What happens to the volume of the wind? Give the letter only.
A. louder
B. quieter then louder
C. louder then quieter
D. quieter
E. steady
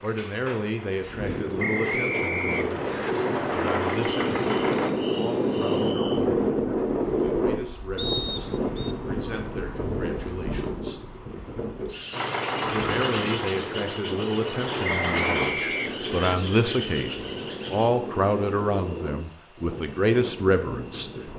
D.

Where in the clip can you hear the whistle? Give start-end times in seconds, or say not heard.
1.6-3.1, 8.0-8.9, 14.8-16.4.